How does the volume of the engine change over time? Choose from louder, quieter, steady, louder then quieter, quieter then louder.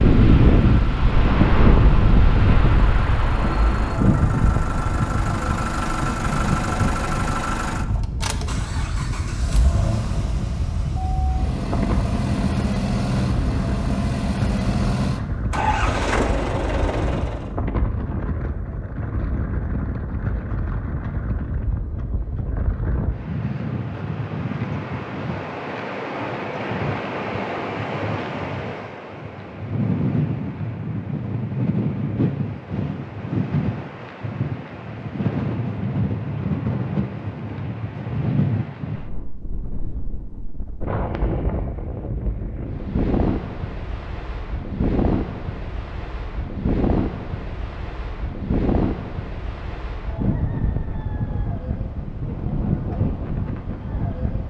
louder.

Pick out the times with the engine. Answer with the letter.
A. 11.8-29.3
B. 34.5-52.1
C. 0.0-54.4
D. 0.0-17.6
D.